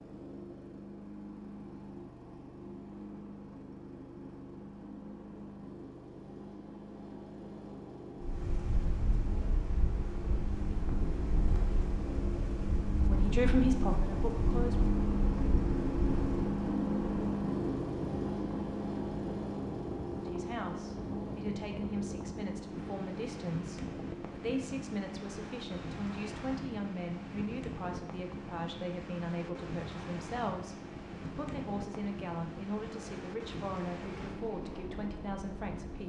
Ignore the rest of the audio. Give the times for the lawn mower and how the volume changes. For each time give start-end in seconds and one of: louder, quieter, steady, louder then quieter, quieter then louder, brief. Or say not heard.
0.0-36.0 louder then quieter.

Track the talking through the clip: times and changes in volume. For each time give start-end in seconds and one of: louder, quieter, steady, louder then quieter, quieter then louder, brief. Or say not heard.
13.0-14.8 brief
20.2-36.0 steady.